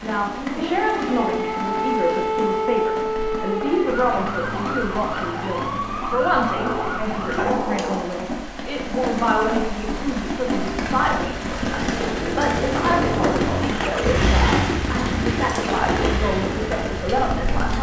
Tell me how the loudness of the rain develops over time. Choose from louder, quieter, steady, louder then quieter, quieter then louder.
louder.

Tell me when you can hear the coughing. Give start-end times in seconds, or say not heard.
not heard.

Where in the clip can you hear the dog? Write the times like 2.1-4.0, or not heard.
6.5-8.1.